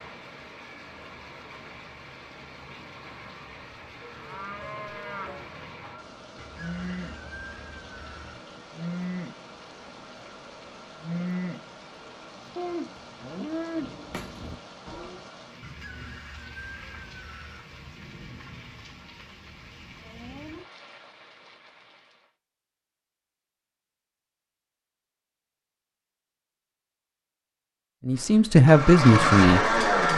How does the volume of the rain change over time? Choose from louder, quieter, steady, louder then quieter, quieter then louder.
steady.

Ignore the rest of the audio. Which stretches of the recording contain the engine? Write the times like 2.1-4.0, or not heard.
28.1-30.1.